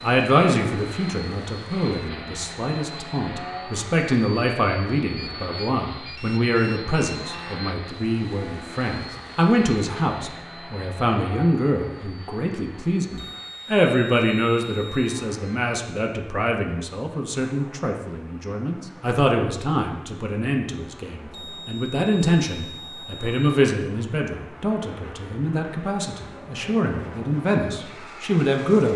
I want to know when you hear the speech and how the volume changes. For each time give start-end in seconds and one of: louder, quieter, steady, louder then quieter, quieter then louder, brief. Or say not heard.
0.0-28.9 steady.